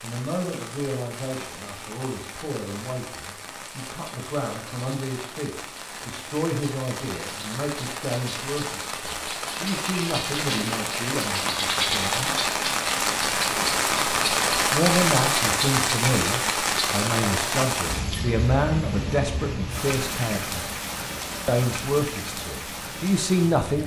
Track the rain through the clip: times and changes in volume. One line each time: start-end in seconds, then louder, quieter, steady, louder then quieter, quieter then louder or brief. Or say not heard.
0.0-23.8 louder then quieter.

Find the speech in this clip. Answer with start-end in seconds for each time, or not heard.
0.0-12.3, 14.7-20.6, 21.4-23.8.